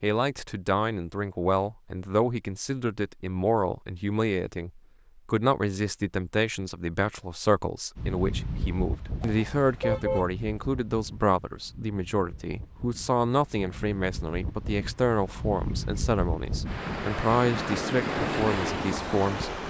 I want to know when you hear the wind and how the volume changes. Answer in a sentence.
You can hear the wind from 8.0 to 19.6 s, getting quieter then louder.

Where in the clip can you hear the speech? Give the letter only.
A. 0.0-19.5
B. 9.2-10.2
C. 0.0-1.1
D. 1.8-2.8
A.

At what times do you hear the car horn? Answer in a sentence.
The car horn can be heard from 9.2 to 10.2 s.